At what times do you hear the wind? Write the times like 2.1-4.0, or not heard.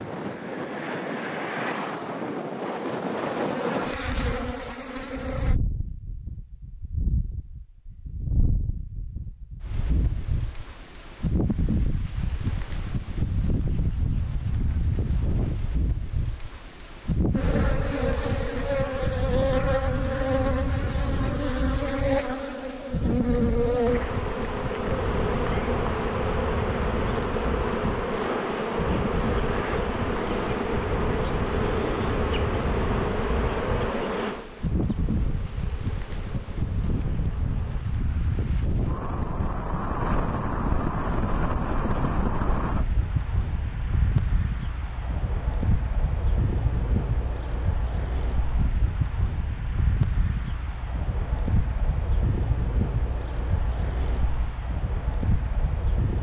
0.0-56.1.